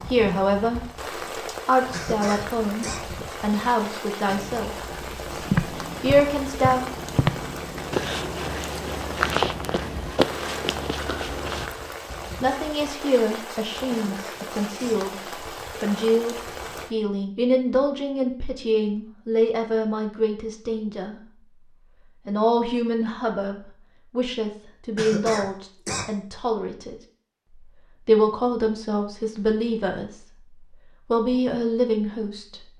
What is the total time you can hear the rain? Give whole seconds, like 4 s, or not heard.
17 s.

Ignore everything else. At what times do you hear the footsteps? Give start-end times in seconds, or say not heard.
5.5-11.7.